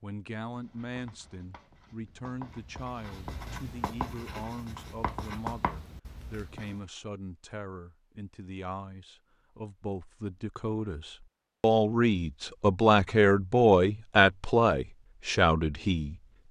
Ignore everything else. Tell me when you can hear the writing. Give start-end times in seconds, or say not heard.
0.5-6.8.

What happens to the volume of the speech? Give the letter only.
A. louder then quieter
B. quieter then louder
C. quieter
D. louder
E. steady
D.